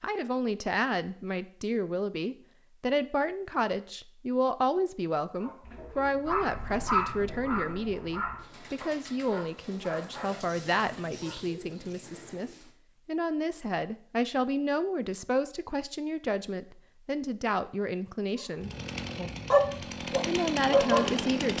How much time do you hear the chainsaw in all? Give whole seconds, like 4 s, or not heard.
3 s.